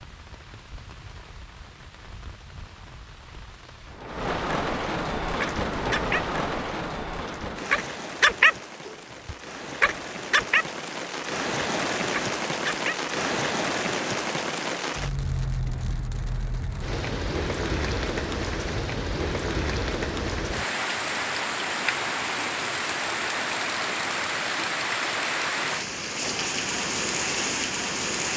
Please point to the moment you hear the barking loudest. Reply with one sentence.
The volume of the barking peaks at 8 seconds.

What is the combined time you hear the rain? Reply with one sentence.
The rain can be heard for 28 seconds in total.